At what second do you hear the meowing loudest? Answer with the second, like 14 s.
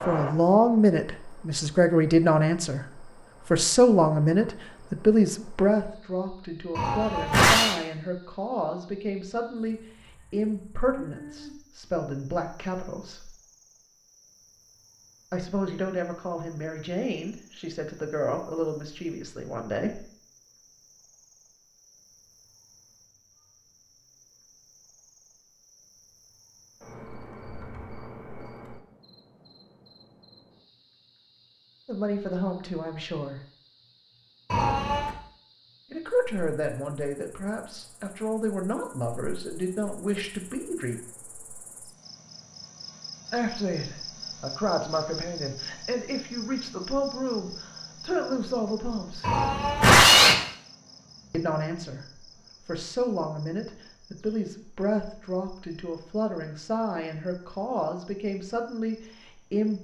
50 s.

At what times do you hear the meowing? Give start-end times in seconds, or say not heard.
6.8-7.8, 34.5-35.1, 49.2-50.4.